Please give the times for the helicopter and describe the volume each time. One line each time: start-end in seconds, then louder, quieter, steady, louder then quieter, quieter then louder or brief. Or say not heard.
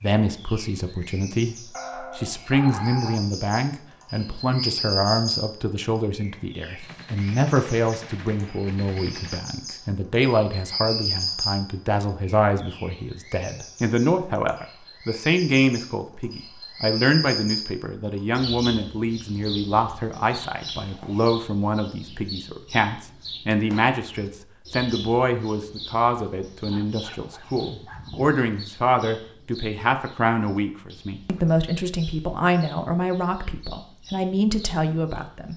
not heard.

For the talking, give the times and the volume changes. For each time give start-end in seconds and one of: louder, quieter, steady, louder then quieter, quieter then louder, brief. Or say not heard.
0.0-35.5 steady.